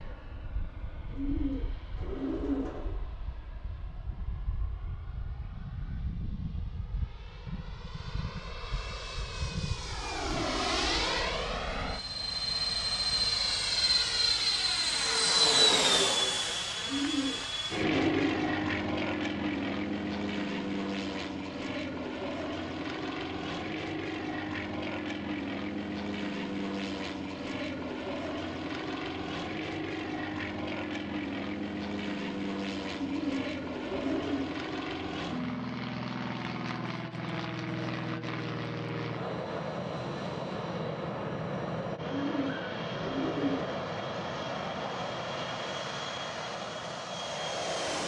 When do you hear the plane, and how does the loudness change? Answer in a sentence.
The plane can be heard from 0.0 to 48.0 s, getting louder then quieter.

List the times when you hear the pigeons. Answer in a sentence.
You can hear the pigeons from 1.1 to 3.0 s, from 16.8 to 18.4 s, from 33.0 to 34.5 s and from 42.0 to 43.8 s.